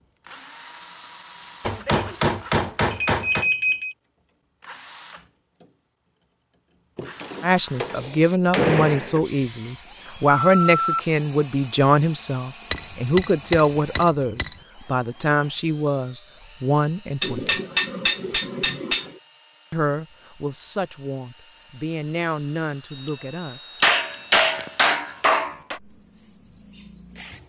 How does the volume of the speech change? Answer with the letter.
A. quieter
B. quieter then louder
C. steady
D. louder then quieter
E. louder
A.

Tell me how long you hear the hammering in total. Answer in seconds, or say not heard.
10 s.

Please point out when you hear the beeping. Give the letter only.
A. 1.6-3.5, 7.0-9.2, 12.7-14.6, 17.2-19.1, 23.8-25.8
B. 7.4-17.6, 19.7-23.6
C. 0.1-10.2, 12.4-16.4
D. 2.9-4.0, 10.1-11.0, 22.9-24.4
D.